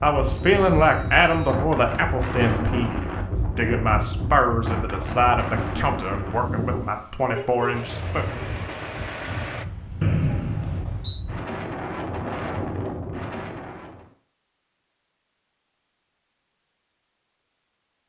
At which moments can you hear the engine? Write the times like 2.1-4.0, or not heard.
7.7-9.7.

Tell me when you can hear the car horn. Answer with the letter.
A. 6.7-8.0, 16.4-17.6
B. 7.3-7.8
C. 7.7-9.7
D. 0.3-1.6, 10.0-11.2
B.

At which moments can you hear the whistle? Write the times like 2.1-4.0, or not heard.
0.3-1.6, 10.0-11.2.